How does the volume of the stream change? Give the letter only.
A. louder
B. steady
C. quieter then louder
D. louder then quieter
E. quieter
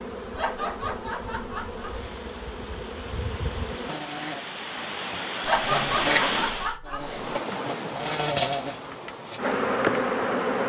D.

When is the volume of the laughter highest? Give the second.
6 s.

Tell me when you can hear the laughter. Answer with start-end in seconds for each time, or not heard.
0.3-1.9, 5.4-7.3.